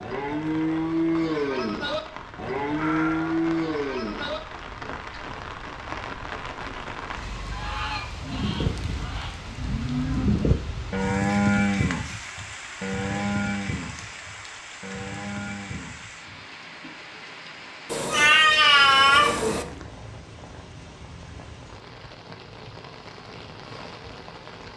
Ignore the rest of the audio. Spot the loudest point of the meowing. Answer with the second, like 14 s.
19 s.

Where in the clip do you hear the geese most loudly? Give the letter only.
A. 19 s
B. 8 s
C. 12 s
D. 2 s
B.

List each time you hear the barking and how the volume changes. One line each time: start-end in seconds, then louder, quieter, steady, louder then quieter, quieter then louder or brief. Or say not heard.
not heard.